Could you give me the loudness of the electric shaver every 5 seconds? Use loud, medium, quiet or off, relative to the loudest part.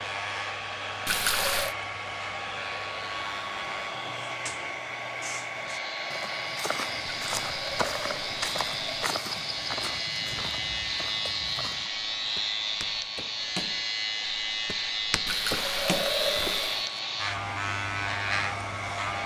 medium, medium, loud, loud.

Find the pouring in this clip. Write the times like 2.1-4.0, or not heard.
1.1-1.8, 7.0-9.1, 15.2-16.9.